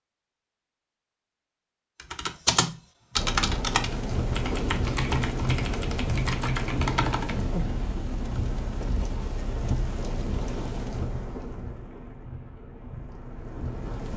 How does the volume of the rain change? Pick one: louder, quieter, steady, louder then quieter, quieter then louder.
quieter.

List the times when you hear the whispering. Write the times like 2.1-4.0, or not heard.
not heard.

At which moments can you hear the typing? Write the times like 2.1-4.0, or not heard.
1.9-7.4.